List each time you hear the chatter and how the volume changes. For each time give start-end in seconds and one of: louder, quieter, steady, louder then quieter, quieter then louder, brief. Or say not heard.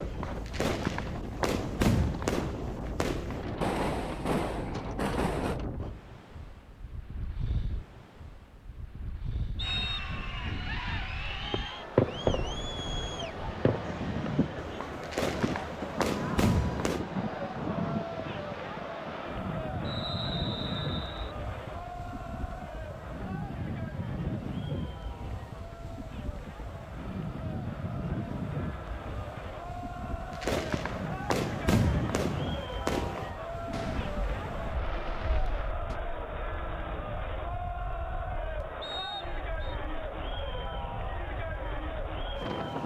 9.6-42.8 quieter then louder.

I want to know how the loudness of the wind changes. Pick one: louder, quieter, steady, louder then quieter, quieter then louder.
quieter.